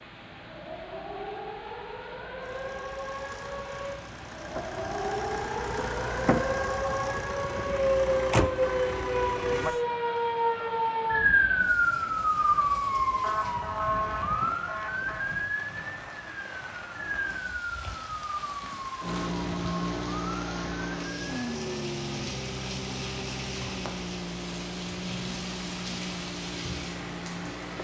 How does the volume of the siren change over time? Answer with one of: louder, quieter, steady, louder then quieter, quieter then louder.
louder then quieter.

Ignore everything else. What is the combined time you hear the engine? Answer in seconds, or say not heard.
16 s.